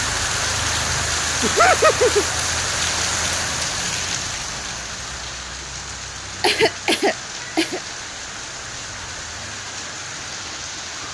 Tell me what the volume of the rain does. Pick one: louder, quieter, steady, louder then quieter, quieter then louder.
quieter.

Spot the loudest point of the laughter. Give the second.
2 s.